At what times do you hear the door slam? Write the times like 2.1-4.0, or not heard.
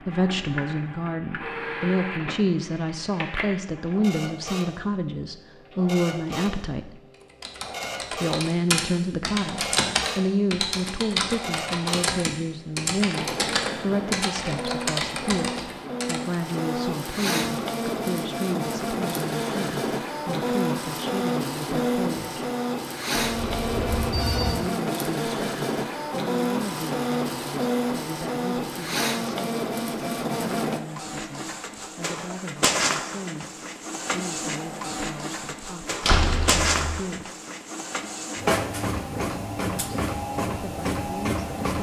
36.0-37.0.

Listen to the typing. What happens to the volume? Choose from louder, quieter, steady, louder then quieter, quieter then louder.
steady.